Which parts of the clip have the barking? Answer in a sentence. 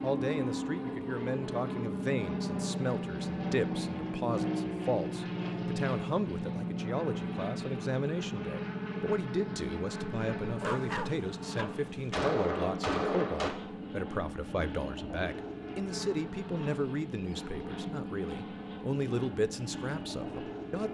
The barking can be heard from 10.6 to 12.2 s.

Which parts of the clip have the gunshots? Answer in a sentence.
You can hear the gunshots from 11.8 to 13.5 s.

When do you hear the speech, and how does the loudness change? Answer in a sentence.
The speech can be heard from 0.0 to 20.8 s, at a steady volume.